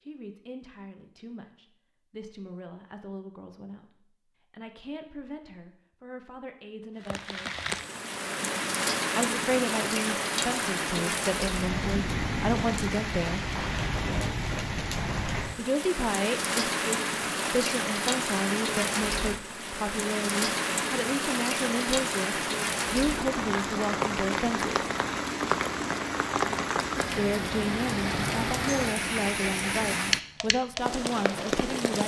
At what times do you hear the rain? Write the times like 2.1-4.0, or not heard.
7.0-32.0.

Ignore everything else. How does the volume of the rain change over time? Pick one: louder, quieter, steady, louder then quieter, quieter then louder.
steady.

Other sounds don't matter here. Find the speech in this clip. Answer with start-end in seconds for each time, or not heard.
0.1-7.7, 9.1-13.4, 15.6-24.9, 27.1-32.0.